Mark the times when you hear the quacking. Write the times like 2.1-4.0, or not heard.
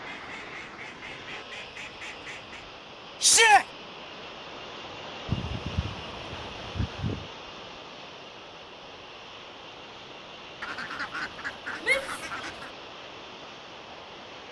0.1-2.6, 5.2-7.3, 10.6-12.7.